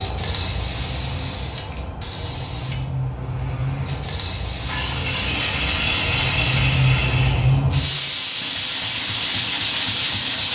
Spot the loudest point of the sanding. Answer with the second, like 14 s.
10 s.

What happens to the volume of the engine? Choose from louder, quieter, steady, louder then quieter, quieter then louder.
louder.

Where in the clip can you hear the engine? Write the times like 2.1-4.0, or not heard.
2.9-7.7.